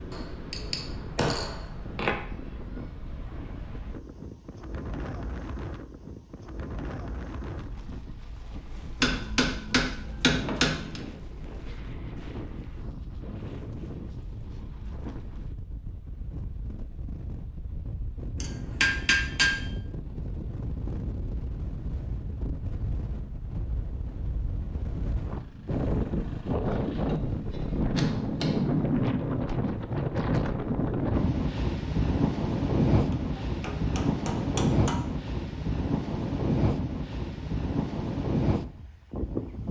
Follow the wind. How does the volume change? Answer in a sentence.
The loudness of the wind goes up.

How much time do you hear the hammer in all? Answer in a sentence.
The hammer can be heard for 9 seconds in total.